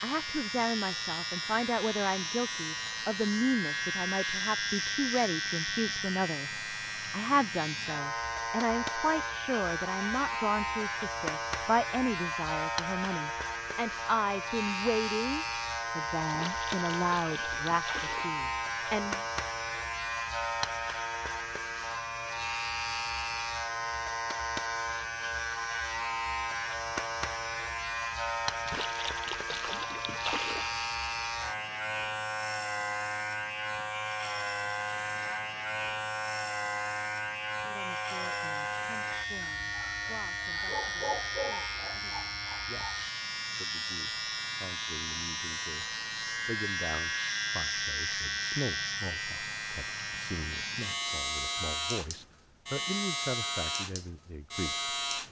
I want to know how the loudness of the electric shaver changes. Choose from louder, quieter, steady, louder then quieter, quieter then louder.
steady.